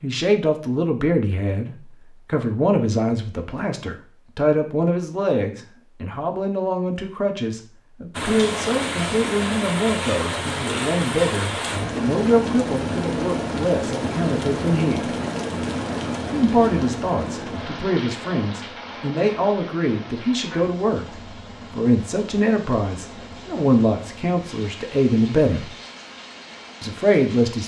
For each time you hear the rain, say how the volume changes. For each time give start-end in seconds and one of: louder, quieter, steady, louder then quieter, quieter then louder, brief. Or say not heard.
8.2-27.6 quieter.